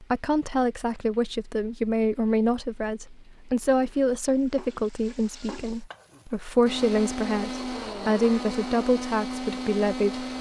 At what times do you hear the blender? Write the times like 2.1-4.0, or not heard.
6.7-10.3.